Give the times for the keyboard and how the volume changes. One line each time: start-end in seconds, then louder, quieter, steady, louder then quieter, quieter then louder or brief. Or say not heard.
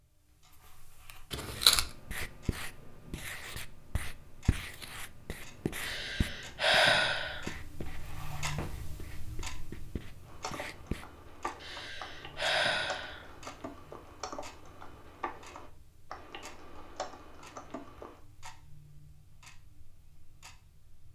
10.2-18.2 steady.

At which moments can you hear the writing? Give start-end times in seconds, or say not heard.
1.5-11.1.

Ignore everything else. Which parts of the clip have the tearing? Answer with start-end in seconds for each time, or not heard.
1.3-1.9.